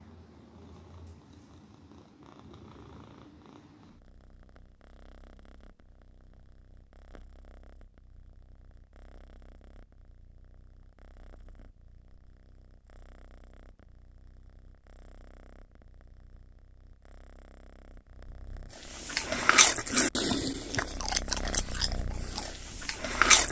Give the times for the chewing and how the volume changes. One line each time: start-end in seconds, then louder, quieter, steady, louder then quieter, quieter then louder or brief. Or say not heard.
18.9-23.4 quieter.